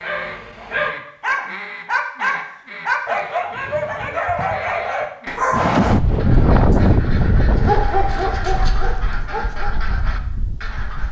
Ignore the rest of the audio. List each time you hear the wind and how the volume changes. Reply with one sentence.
The wind can be heard from 5.5 to 11.0 s, getting quieter then louder.